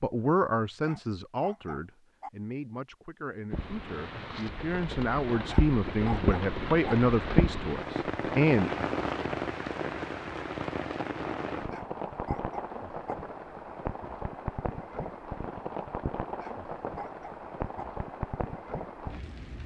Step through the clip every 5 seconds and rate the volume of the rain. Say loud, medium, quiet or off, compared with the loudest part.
medium, loud, medium, medium.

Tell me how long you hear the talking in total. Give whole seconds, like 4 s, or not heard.
9 s.